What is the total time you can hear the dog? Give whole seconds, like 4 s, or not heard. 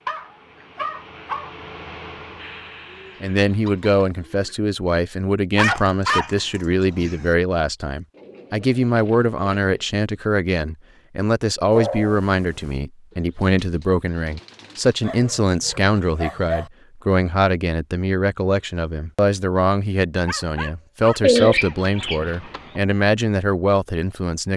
8 s.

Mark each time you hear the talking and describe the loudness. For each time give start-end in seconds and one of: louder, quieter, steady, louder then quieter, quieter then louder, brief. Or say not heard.
3.2-24.5 steady.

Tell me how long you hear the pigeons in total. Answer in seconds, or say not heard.
7 s.